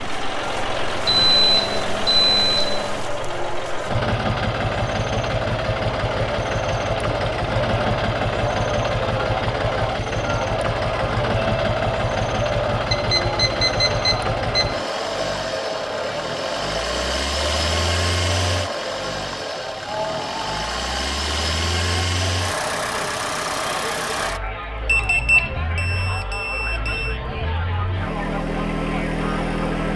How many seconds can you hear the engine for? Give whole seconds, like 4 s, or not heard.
30 s.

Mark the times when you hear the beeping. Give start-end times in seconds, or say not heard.
1.1-3.0, 12.9-14.8, 24.9-27.1.